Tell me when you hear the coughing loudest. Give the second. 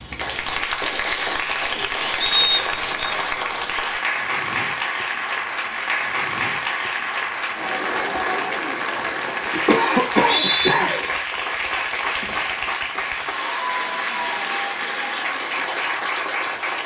10 s.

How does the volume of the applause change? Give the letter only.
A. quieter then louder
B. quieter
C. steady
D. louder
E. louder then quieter
C.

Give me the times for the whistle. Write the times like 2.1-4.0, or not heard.
2.2-3.1, 10.0-10.8.